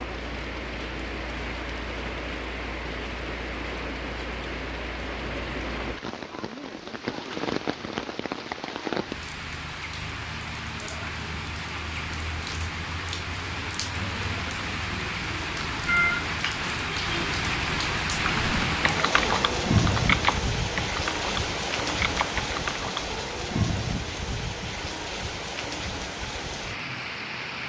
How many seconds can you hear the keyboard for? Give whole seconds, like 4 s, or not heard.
5 s.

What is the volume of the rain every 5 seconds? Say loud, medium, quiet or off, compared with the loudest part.
medium, medium, medium, loud, loud, medium.